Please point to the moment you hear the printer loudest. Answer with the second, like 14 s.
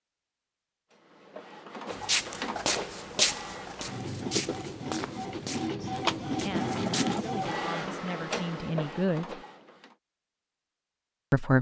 7 s.